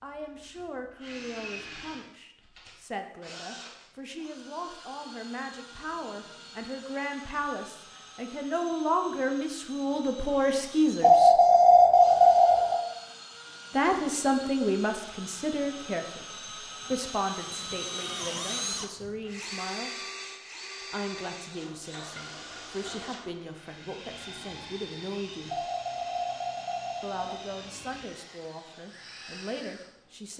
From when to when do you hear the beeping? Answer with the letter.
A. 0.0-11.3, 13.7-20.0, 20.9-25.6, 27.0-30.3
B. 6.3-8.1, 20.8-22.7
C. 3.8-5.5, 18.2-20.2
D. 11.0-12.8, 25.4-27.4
D.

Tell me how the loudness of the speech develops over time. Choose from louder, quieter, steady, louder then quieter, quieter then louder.
louder then quieter.